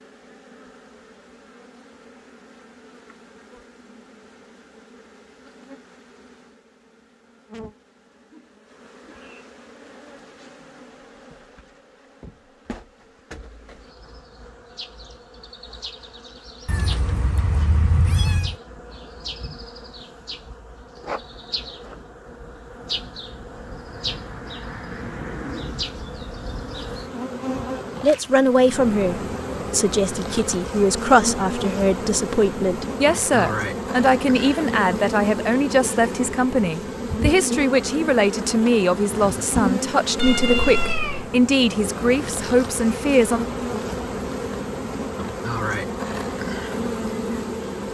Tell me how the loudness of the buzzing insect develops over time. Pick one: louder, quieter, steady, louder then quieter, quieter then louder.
louder.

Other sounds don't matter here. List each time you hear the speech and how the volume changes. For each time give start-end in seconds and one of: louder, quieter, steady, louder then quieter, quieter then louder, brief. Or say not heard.
28.0-43.5 steady.